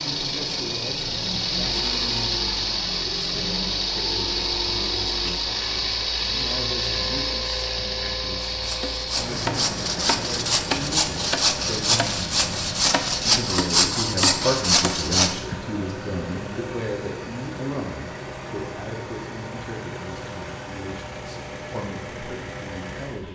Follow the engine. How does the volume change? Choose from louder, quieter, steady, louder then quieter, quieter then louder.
quieter.